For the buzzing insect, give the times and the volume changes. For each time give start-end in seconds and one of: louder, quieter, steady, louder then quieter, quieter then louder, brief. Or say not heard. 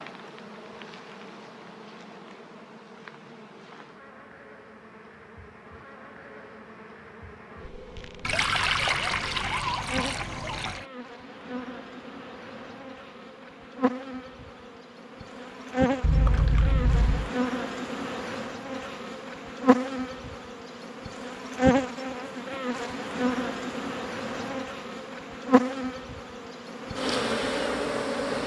0.0-28.4 louder.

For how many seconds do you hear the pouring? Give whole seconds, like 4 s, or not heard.
4 s.